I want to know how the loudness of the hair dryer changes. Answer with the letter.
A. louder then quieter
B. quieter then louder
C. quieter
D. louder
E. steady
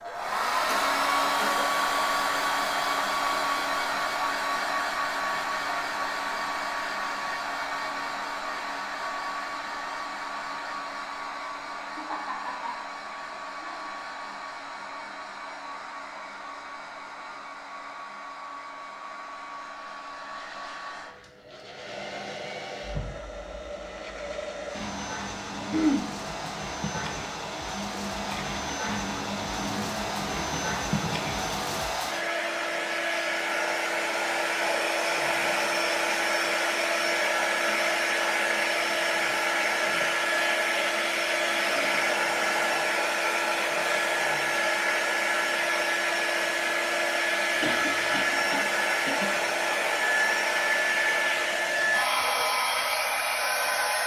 B.